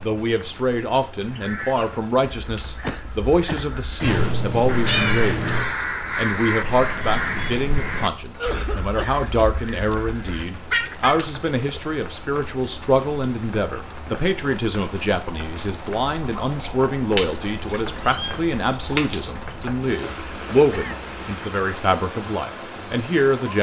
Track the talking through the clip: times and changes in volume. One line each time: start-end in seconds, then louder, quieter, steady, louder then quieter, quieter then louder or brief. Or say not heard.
0.0-23.5 steady.